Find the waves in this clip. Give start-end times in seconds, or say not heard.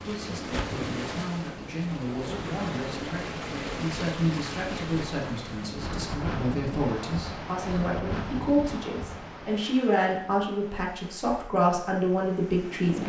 0.0-13.0.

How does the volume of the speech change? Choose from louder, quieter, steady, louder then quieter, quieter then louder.
louder.